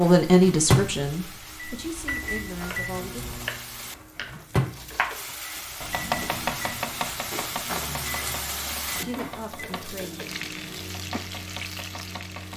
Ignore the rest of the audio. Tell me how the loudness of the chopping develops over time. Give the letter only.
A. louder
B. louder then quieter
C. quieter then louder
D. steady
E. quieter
B.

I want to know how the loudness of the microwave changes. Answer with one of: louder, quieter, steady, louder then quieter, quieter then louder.
quieter.